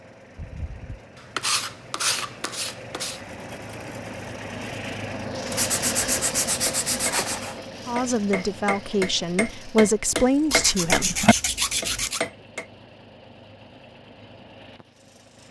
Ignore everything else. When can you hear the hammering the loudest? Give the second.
11 s.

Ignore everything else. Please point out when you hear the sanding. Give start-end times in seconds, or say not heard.
0.3-3.2, 5.5-7.6, 10.5-12.2.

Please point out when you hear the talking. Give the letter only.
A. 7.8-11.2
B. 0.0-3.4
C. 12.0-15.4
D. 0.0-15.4
A.